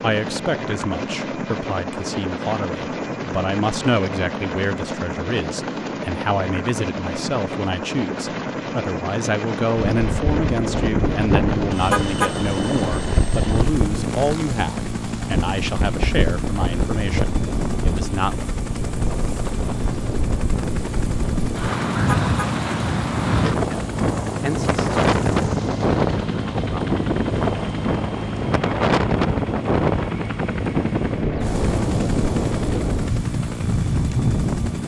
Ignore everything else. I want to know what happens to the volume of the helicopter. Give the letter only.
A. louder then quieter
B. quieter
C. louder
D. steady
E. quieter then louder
D.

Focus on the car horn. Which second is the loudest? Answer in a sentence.
The loudest moment of the car horn is at 12 seconds.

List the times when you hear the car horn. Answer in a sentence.
You can hear the car horn from 11.9 to 12.3 s and from 22.1 to 22.5 s.